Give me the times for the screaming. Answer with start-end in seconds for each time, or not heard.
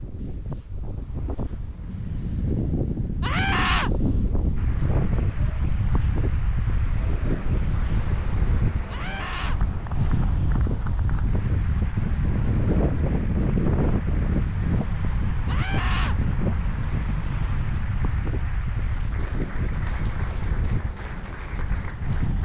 3.2-3.9, 8.9-9.6, 15.4-16.1.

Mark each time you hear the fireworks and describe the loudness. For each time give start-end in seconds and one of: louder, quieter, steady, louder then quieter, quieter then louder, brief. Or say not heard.
not heard.